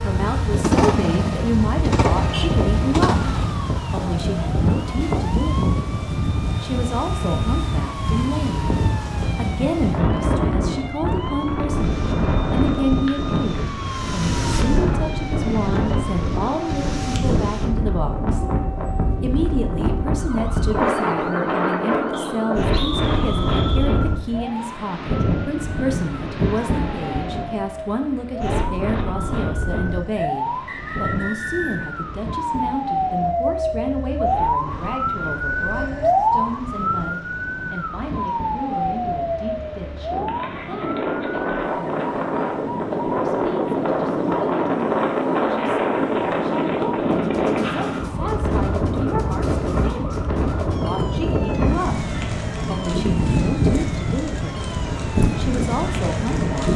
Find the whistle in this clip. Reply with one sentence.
The whistle can be heard from 22.1 to 23.9 s and from 30.1 to 31.9 s.